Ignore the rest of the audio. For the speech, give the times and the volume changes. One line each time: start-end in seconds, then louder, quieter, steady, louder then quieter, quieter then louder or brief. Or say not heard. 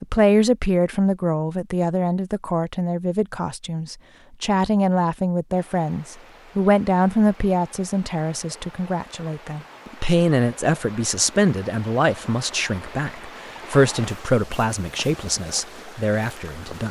0.0-16.8 steady.